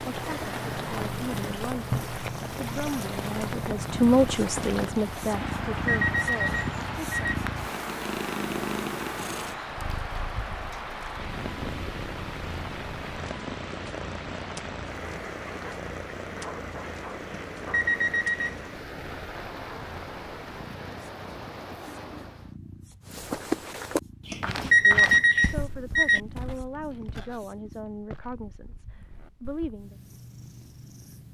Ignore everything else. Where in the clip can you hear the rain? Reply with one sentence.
The rain can be heard from 0.0 to 22.6 s.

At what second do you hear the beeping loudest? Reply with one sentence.
The volume of the beeping peaks at 25 seconds.